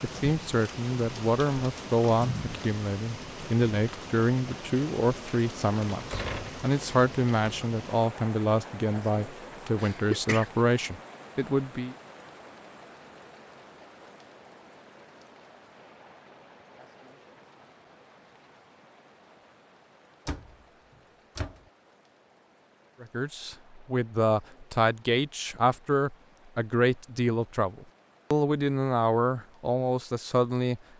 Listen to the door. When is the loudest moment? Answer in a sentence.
The volume of the door peaks at 6 seconds.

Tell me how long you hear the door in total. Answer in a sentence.
The door can be heard for 2 seconds in total.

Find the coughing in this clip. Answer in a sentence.
The coughing can be heard from 9.8 to 10.5 s.